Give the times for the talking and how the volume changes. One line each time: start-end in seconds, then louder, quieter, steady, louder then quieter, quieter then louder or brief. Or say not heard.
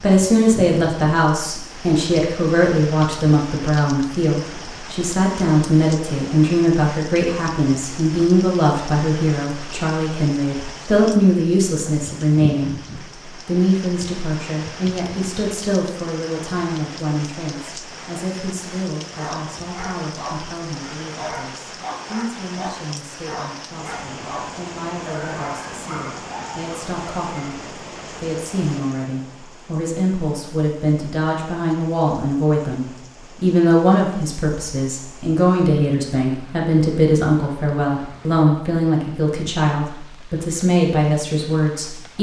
0.0-42.1 quieter then louder.